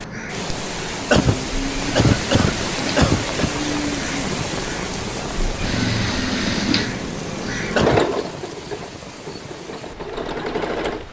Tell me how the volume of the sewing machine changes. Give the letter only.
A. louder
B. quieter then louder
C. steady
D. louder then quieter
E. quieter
D.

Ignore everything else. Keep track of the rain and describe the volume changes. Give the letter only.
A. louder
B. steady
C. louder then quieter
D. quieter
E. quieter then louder
D.